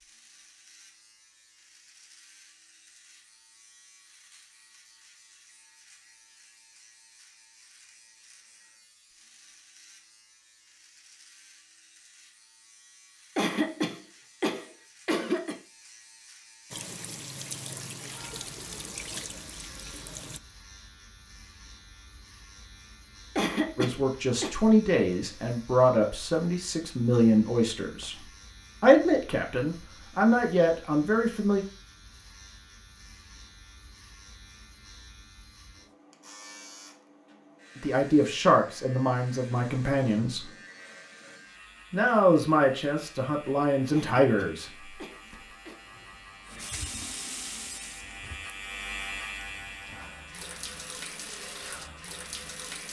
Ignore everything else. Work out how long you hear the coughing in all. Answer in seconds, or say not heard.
5 s.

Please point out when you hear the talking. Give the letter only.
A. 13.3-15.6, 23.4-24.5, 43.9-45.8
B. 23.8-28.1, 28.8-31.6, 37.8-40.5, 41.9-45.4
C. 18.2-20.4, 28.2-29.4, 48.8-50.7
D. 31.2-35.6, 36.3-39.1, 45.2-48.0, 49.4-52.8
B.